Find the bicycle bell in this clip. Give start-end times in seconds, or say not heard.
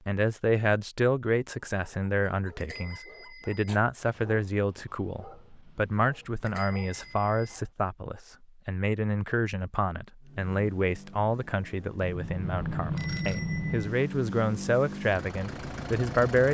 2.5-3.7, 6.4-7.5, 12.0-14.0.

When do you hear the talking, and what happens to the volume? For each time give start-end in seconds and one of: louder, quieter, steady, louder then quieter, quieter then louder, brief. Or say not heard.
0.1-16.5 steady.